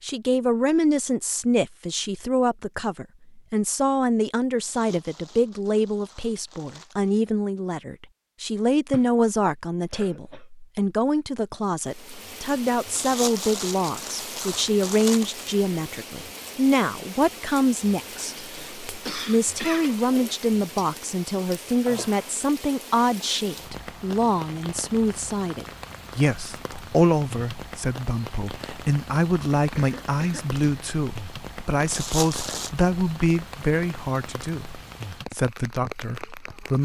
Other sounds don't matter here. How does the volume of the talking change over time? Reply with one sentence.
The loudness of the talking stays about the same.